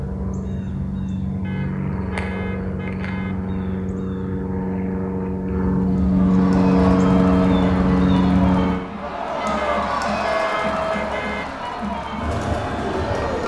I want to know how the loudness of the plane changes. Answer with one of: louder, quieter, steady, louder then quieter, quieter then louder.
louder.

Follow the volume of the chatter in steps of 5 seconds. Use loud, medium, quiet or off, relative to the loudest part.
off, loud, loud.